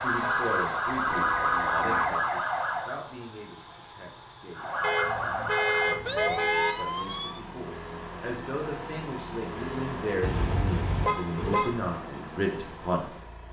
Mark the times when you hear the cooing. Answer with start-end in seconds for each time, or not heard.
not heard.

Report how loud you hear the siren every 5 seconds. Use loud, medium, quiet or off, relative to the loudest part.
loud, loud, off.